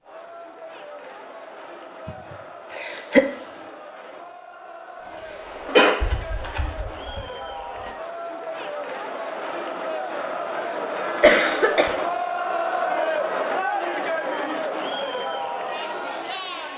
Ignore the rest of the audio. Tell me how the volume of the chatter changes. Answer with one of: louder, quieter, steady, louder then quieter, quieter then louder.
louder.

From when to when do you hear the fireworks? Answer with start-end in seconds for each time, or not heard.
5.0-8.0.